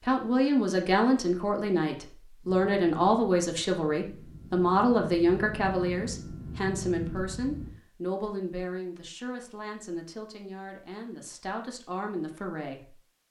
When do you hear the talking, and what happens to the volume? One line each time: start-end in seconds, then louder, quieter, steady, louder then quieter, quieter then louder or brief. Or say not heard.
0.0-12.9 quieter.